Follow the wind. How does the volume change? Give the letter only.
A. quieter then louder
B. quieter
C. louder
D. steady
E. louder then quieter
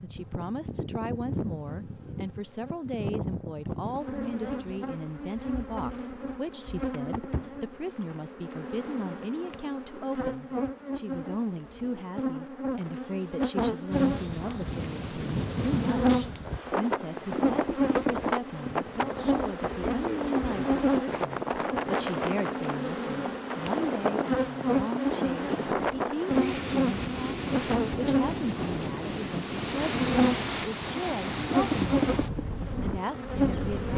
D.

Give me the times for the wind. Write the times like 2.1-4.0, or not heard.
13.9-33.9.